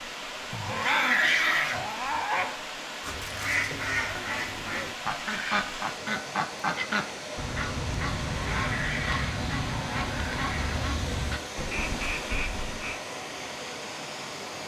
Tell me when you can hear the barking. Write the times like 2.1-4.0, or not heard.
0.5-2.5, 8.3-10.9.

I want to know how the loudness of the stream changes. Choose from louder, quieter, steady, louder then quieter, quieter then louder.
steady.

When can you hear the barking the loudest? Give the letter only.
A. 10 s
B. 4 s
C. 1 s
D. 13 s
C.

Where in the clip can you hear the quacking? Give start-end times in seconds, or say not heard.
3.0-13.0.